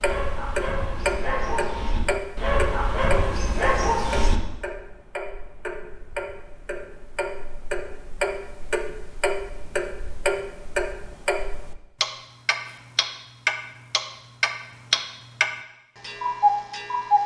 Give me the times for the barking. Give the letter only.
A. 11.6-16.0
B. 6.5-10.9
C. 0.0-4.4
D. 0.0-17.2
C.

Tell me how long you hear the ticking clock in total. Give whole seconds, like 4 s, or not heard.
17 s.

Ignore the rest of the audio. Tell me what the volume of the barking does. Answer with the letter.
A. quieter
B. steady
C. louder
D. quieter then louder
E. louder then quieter
C.